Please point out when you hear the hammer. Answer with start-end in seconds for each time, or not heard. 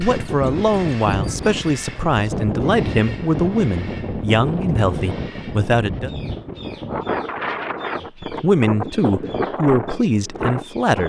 not heard.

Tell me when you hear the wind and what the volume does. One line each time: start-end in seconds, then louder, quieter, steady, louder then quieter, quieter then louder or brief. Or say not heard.
0.0-11.0 steady.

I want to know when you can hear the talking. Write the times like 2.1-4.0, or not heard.
0.0-6.1, 8.2-11.0.